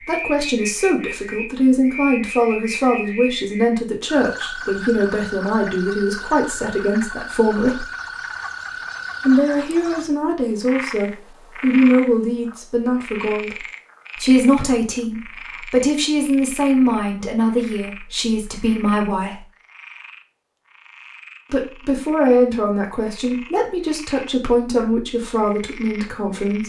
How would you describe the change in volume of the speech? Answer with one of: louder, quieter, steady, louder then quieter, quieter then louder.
steady.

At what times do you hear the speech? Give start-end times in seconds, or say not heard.
0.1-7.8, 9.2-19.4, 21.5-26.6.